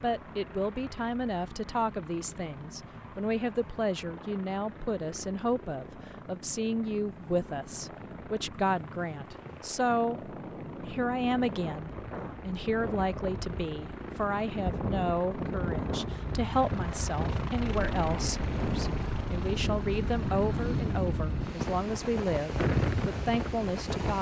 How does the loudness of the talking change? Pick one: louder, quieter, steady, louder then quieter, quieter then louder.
steady.